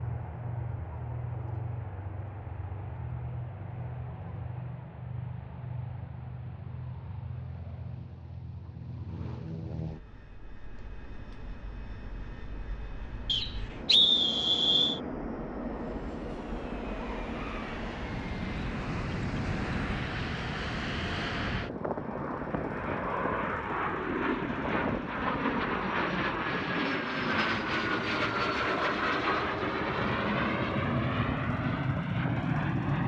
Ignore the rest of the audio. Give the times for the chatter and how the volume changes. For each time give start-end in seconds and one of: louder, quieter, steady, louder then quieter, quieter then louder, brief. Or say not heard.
not heard.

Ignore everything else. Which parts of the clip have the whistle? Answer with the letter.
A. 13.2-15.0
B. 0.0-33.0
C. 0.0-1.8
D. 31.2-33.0
A.